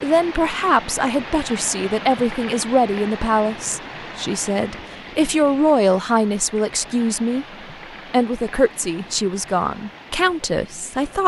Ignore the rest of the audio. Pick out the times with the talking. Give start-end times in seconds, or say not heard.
0.0-7.5, 8.1-11.2.